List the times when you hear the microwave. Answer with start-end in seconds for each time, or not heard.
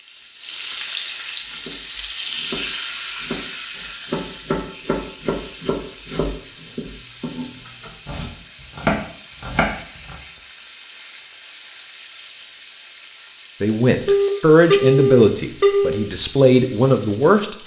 not heard.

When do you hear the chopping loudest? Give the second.
9 s.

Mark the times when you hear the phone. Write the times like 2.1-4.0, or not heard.
14.1-16.0.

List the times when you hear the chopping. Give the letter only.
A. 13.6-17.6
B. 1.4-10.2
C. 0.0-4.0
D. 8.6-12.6
B.